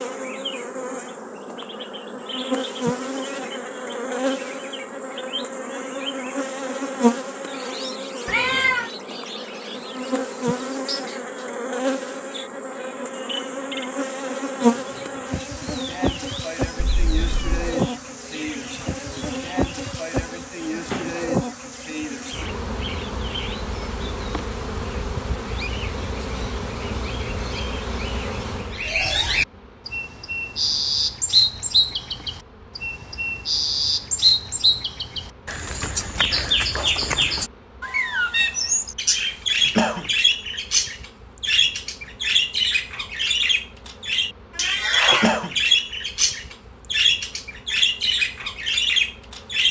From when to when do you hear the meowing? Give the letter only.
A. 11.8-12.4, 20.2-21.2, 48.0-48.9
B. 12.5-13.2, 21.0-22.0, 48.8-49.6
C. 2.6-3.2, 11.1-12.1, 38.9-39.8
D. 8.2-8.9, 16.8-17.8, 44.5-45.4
D.